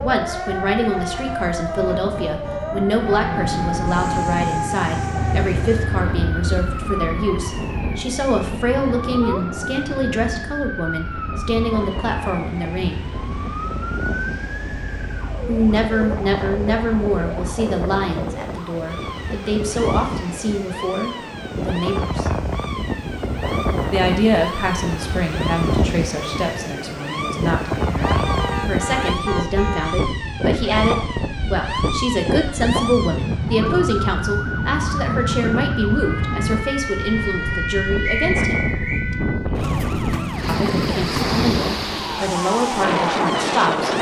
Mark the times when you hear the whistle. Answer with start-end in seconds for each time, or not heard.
38.0-39.0.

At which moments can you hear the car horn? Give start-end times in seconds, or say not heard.
1.1-2.9, 28.1-30.0.